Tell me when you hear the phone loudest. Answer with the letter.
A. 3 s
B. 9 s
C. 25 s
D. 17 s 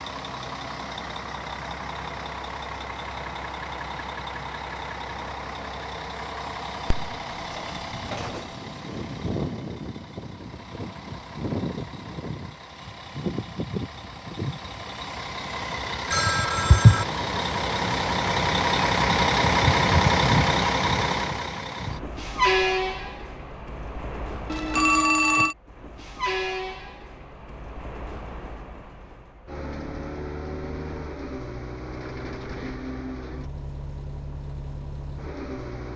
D.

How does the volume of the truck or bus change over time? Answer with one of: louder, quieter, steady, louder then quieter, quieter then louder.
louder then quieter.